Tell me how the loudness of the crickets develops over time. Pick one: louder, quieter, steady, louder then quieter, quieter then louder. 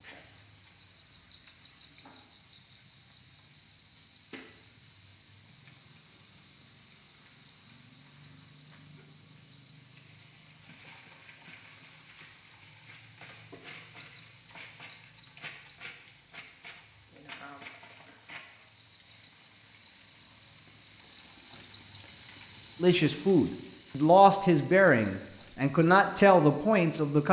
louder.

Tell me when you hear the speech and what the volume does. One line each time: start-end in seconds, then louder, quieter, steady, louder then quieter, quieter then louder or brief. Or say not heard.
22.8-27.2 steady.